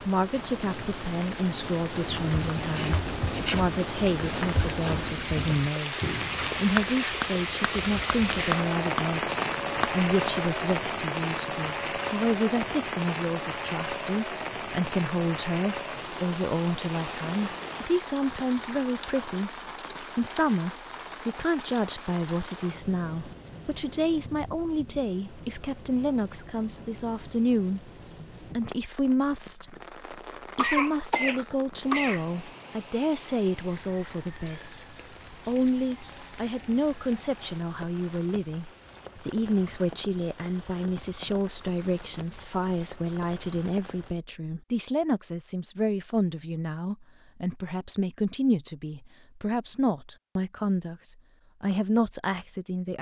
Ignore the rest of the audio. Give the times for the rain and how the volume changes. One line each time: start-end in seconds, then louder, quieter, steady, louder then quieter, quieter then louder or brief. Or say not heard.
0.0-44.1 quieter.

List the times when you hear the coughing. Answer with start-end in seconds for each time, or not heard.
30.6-32.2.